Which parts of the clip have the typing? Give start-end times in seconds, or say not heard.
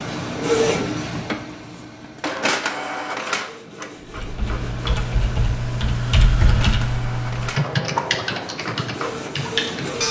4.0-10.0.